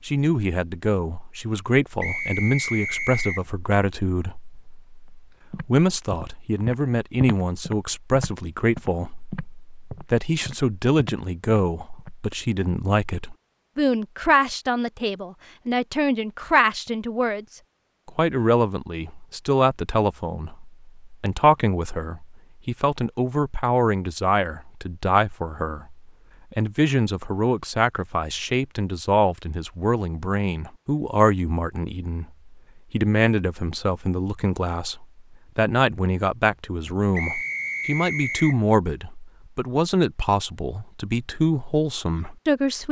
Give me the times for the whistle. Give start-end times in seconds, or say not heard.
2.0-3.5, 37.1-38.6.